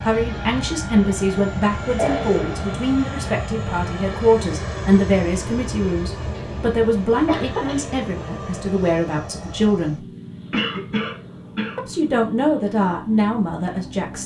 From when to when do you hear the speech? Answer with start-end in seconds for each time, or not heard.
0.0-10.1, 11.8-14.2.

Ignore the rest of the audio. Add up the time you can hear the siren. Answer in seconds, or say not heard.
not heard.